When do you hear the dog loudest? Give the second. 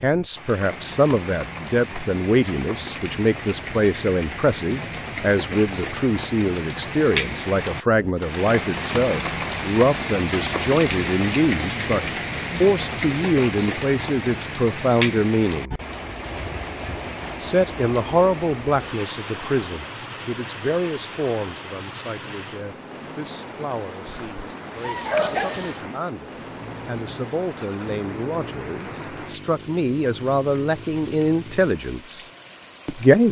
25 s.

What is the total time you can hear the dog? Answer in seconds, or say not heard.
2 s.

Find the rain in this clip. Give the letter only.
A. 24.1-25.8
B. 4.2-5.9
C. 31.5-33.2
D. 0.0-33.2
D.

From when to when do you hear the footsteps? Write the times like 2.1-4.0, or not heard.
not heard.